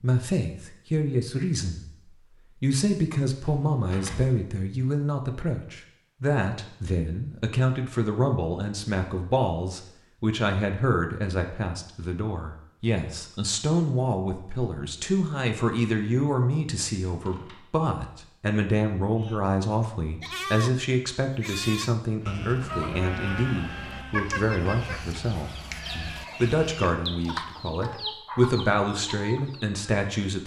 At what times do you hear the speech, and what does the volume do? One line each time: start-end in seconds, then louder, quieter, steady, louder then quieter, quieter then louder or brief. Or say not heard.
0.0-1.9 brief
2.6-30.4 steady.